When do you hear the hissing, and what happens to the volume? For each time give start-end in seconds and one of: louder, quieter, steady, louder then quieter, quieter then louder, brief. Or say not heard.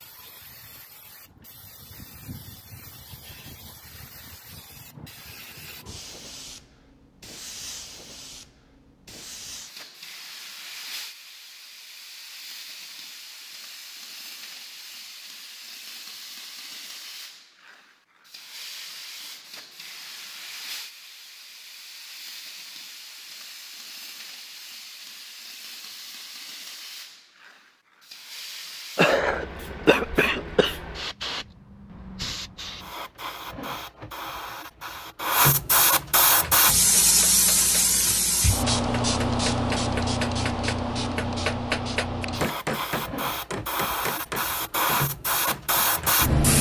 0.0-46.5 louder.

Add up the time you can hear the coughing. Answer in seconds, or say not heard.
2 s.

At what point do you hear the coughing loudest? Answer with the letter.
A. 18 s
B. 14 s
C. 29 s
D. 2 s
C.